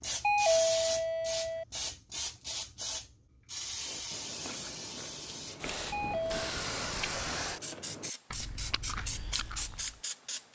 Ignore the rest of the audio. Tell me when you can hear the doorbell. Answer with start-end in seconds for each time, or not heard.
0.2-1.6, 5.9-6.5.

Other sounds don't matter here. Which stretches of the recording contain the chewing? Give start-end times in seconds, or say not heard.
3.8-10.0.